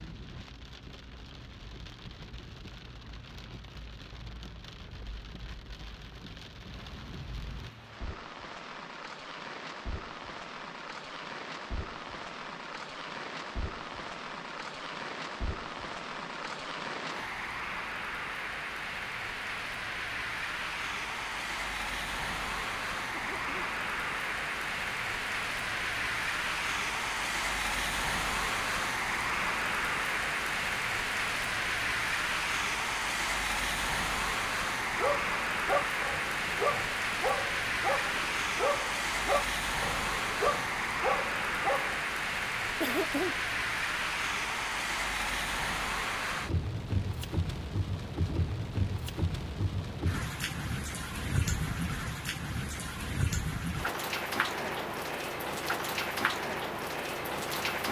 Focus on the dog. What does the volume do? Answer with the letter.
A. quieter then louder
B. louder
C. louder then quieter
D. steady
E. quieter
D.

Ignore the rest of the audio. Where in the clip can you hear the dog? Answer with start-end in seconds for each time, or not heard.
34.8-42.0.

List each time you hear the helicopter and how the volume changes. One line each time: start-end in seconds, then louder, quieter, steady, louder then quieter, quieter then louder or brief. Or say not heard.
not heard.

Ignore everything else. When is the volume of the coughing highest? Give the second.
43 s.